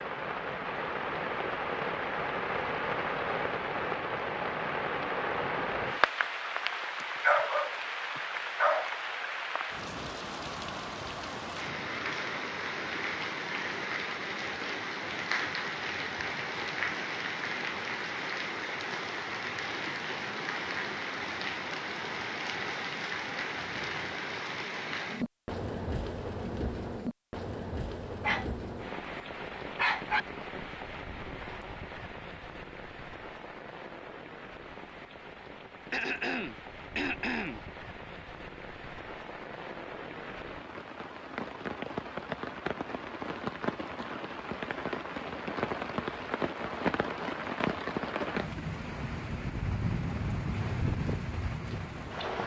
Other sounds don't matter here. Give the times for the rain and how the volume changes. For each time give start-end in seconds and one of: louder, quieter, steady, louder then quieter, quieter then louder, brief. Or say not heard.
0.0-52.4 quieter then louder.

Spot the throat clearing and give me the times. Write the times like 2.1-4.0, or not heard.
35.9-37.6.